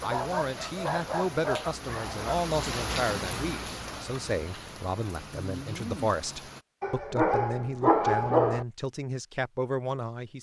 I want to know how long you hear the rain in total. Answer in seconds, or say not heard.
7 s.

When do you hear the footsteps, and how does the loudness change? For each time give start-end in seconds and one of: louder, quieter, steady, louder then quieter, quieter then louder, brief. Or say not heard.
not heard.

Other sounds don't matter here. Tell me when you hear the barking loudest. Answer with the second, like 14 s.
8 s.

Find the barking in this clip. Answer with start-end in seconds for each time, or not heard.
0.0-2.5, 6.8-8.7.